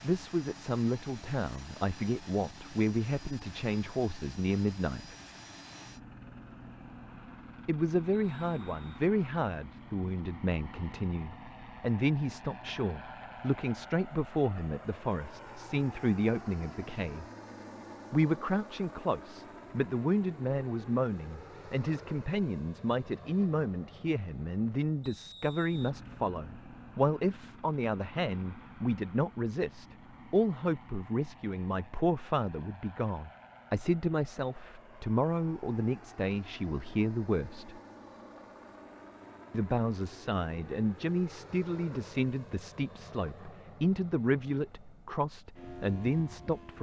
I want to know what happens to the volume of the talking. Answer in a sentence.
The loudness of the talking stays about the same.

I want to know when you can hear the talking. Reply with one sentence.
You can hear the talking from 0.0 to 5.2 s, from 7.7 to 17.2 s, from 18.1 to 37.8 s and from 39.5 to 46.7 s.